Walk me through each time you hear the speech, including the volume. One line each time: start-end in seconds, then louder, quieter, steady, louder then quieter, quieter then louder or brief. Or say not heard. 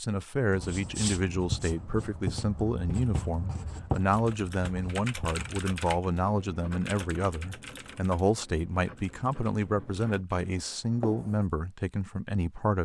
0.0-12.7 steady.